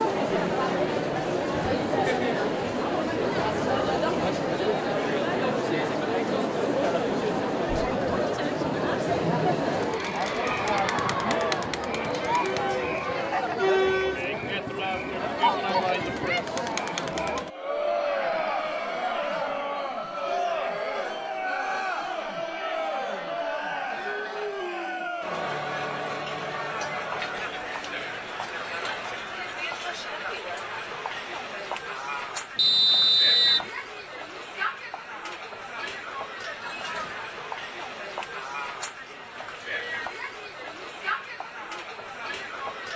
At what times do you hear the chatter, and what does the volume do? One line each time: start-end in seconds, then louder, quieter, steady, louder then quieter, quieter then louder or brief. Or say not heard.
0.0-42.9 quieter.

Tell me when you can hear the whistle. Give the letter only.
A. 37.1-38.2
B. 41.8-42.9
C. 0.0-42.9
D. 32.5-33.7
D.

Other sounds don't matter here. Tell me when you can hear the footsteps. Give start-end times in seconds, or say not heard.
not heard.